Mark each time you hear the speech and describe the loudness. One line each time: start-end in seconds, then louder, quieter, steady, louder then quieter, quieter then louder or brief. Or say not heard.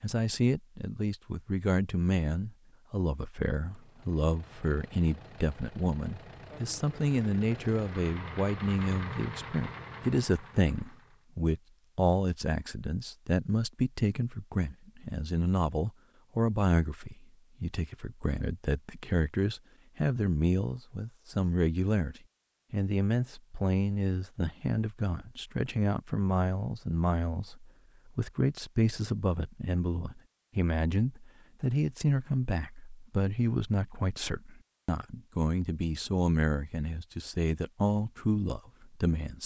0.0-39.4 steady.